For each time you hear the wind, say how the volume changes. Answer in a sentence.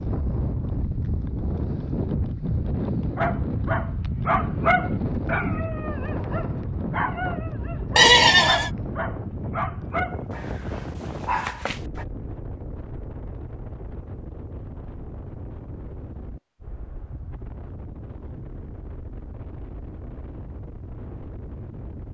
The wind can be heard from 0.0 to 22.0 s, getting quieter.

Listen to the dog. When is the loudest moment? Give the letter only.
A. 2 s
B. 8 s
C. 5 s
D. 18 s
C.